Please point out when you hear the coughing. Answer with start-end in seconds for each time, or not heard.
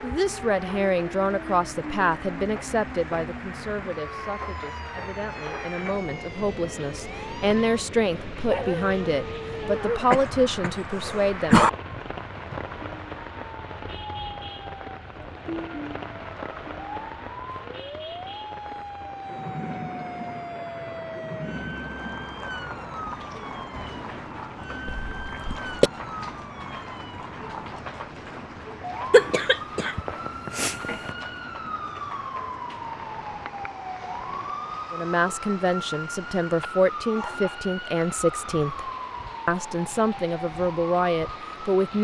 10.1-11.7, 24.9-25.9, 29.1-31.1.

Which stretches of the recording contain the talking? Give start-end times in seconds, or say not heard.
0.0-11.6, 34.9-41.9.